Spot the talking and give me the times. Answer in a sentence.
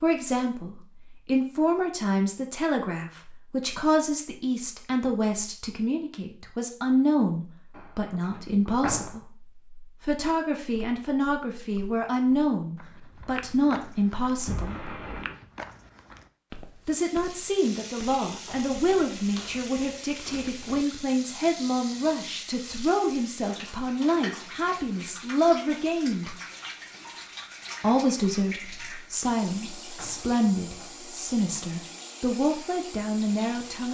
You can hear the talking from 0.0 to 14.9 s, from 16.9 to 26.4 s and from 27.8 to 33.8 s.